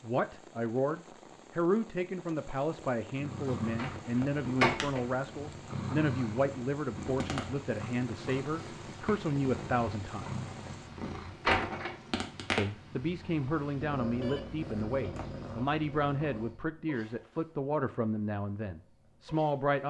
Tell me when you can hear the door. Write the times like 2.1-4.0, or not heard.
3.8-5.0, 11.4-11.9.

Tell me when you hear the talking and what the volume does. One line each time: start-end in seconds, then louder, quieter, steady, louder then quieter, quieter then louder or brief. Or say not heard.
0.0-10.3 steady
12.6-19.8 steady.